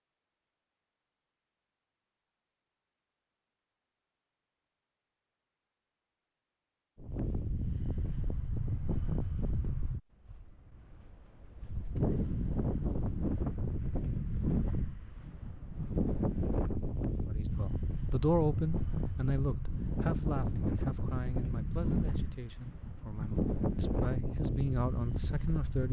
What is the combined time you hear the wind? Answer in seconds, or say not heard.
19 s.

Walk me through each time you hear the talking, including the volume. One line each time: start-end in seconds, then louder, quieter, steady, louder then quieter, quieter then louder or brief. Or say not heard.
17.3-25.8 quieter then louder.